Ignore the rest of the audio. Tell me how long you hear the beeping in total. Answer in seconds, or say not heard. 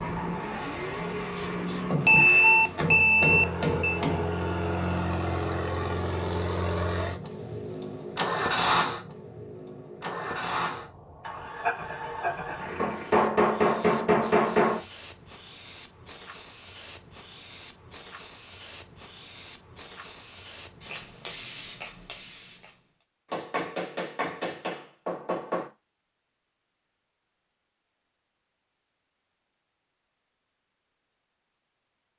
2 s.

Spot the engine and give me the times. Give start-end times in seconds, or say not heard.
0.0-13.3.